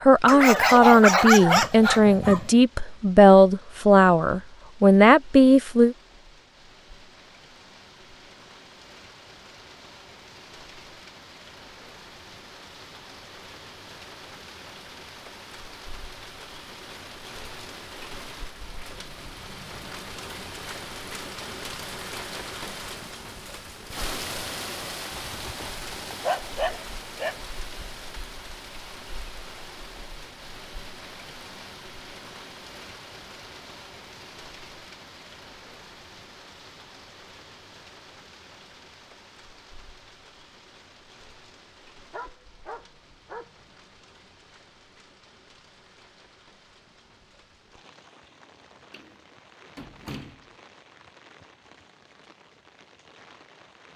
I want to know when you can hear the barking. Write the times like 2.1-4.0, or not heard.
0.2-2.5, 25.1-27.4, 42.1-43.5.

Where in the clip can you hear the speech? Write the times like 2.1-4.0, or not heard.
0.0-6.0.